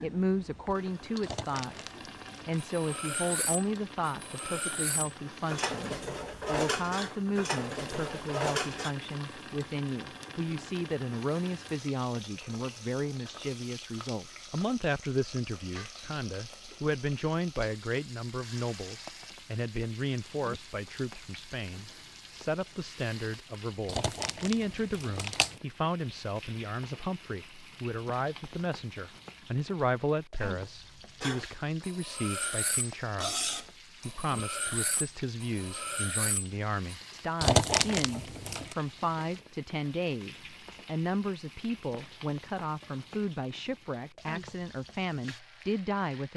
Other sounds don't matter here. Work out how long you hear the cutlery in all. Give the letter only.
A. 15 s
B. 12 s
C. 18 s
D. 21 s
B.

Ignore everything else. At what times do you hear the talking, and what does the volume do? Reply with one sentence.
You can hear the talking from 0.0 to 46.3 s, at a steady volume.